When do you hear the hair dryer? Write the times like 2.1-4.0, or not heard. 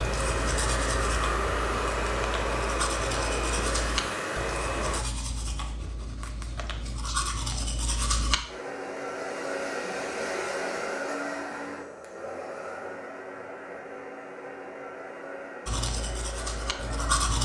0.0-5.0, 8.4-17.4.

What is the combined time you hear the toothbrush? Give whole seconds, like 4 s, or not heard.
10 s.